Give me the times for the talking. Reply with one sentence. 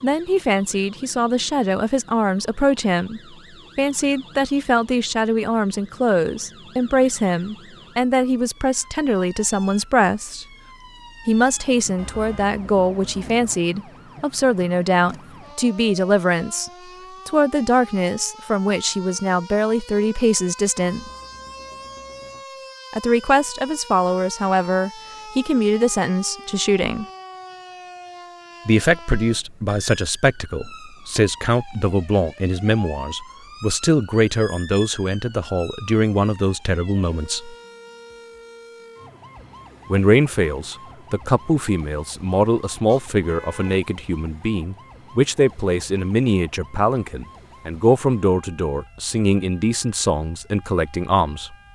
You can hear the talking from 0.0 to 10.4 s, from 11.2 to 21.1 s, from 22.9 to 27.1 s, from 28.6 to 37.5 s and from 39.9 to 51.5 s.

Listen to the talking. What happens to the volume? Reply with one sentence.
The volume of the talking stays about the same.